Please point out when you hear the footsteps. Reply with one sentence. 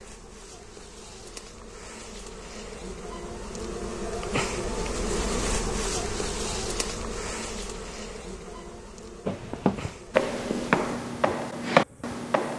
You can hear the footsteps from 9.2 to 12.5 s.